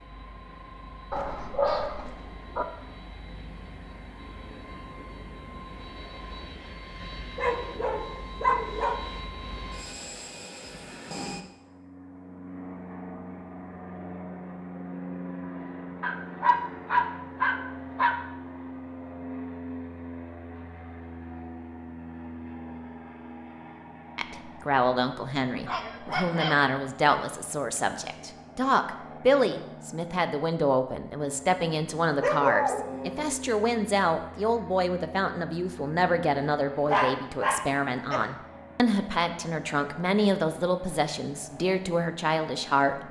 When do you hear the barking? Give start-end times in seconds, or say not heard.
1.1-2.6, 7.3-9.0, 16.0-18.1, 25.6-26.6, 32.2-33.4, 36.9-38.2.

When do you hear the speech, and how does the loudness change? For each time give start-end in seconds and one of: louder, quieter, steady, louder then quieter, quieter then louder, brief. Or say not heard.
24.1-43.0 steady.